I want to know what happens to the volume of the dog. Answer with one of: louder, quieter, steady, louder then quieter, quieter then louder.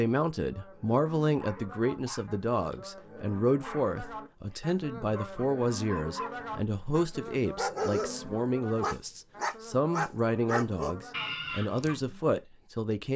louder.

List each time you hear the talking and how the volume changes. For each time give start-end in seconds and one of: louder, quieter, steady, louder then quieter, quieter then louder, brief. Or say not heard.
0.0-13.1 steady.